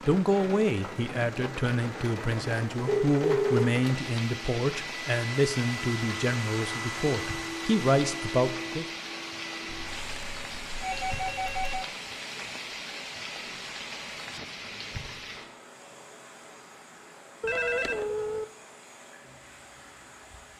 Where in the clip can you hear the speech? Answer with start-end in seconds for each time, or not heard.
0.1-8.8.